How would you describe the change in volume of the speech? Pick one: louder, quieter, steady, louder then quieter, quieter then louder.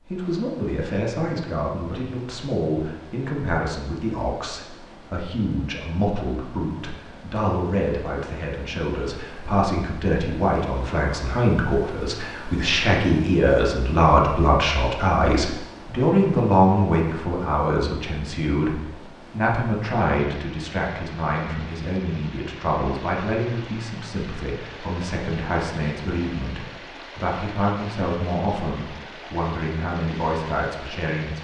louder then quieter.